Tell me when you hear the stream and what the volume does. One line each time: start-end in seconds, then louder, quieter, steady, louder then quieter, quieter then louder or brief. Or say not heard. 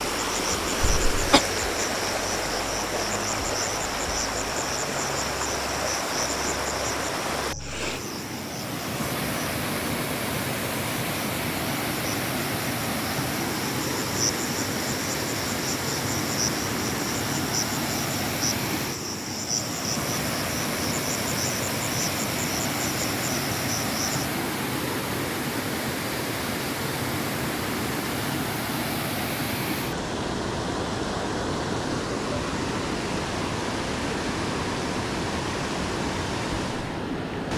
0.0-37.5 steady.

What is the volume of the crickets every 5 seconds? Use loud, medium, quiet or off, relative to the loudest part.
loud, loud, loud, loud, loud, off, off, off.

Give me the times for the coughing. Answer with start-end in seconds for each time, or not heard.
0.8-1.4.